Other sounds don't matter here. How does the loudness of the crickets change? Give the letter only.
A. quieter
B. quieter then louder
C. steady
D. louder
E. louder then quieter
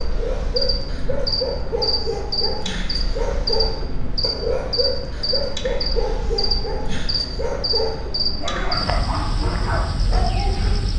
C.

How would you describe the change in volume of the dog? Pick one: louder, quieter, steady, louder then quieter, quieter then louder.
steady.